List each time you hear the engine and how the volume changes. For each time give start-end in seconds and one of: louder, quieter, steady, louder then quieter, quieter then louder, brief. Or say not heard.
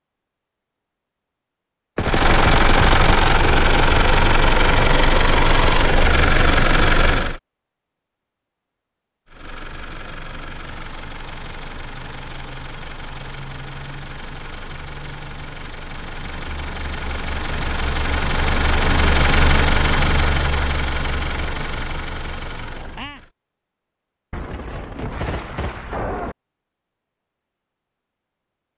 1.9-7.4 steady
9.2-23.3 louder then quieter.